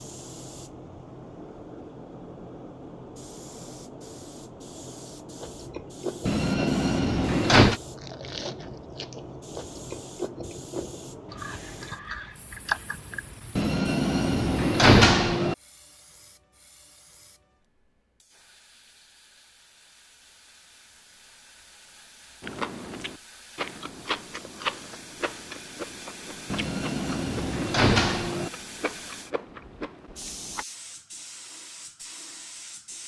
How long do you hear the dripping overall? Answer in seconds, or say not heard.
not heard.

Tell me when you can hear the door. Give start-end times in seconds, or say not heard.
6.2-7.8, 13.6-15.6, 26.5-28.5.